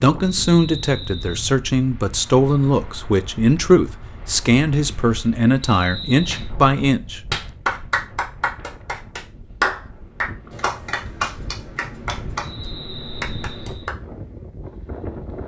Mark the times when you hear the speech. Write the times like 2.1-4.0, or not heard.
0.0-7.2.